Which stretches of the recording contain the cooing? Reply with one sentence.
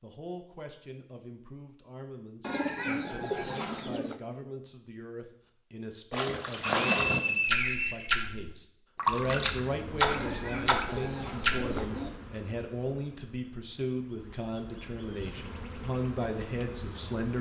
The cooing can be heard from 2.4 to 4.2 s and from 10.1 to 12.1 s.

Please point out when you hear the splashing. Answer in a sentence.
You can hear the splashing from 6.1 to 11.8 s.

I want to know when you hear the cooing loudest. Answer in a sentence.
The loudest moment of the cooing is at 3 seconds.